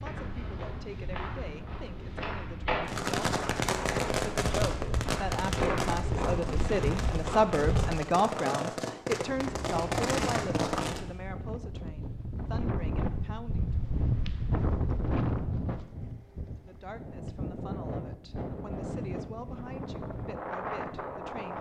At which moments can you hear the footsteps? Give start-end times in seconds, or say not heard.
0.0-7.9.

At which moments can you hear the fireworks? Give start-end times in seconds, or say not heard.
2.9-11.1.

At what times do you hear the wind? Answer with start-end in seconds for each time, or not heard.
9.2-21.5.